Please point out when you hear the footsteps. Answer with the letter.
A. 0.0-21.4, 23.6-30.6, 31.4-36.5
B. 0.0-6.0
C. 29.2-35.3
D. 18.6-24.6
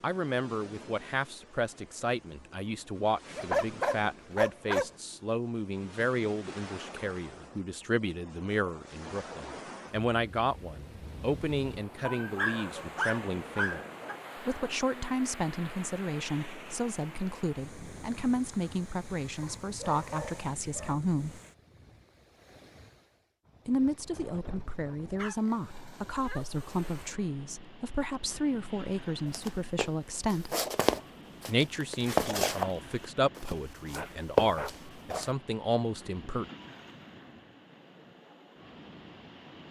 C.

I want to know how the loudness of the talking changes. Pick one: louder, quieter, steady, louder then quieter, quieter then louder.
steady.